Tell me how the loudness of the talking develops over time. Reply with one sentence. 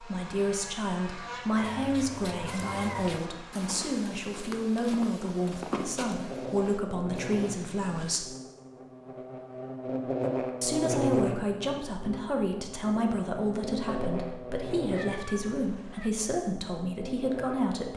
The loudness of the talking stays about the same.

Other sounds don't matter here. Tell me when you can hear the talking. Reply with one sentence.
The talking can be heard from 0.0 to 8.3 s and from 10.6 to 17.9 s.